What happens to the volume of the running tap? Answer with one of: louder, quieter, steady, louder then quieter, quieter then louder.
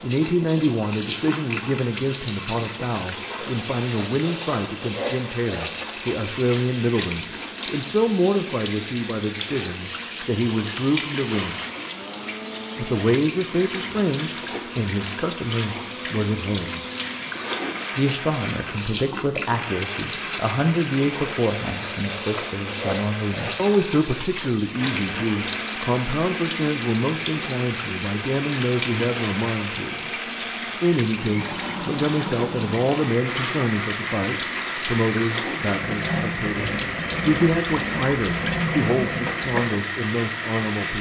steady.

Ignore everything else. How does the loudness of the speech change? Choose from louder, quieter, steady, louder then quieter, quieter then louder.
steady.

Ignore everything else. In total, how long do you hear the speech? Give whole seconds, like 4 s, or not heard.
38 s.